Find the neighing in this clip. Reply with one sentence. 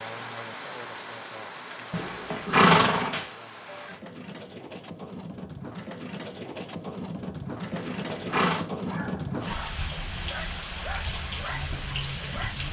You can hear the neighing from 1.9 to 3.2 s and from 7.7 to 8.7 s.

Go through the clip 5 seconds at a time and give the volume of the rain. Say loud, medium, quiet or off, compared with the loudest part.
medium, loud, loud.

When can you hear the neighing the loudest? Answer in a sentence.
The volume of the neighing peaks at 3 seconds.